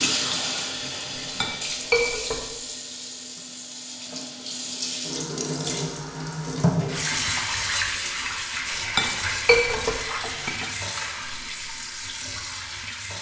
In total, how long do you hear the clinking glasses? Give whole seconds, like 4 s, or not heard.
3 s.